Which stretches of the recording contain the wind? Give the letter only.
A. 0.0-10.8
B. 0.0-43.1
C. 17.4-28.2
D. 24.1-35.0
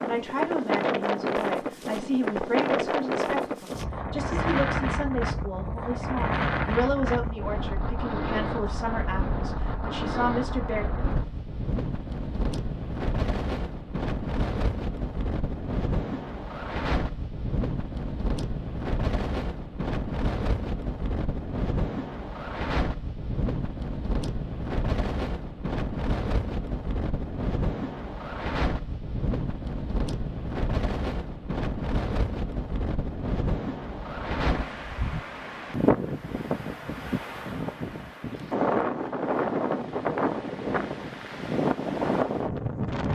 B.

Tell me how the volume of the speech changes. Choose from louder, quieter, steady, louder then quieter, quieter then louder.
steady.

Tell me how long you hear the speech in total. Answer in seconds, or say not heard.
11 s.